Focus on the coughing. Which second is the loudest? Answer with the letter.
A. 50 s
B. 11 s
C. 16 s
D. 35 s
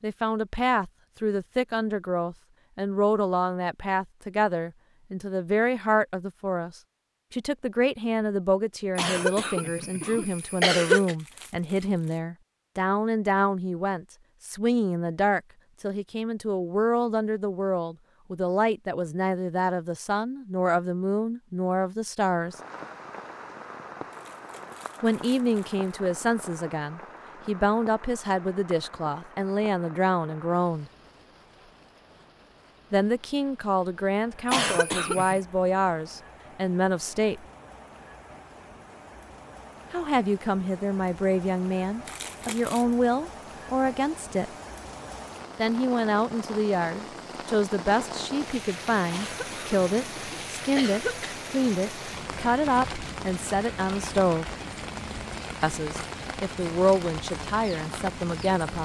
B.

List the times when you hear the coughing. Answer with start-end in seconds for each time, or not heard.
8.9-11.2, 34.5-35.4, 49.1-51.4.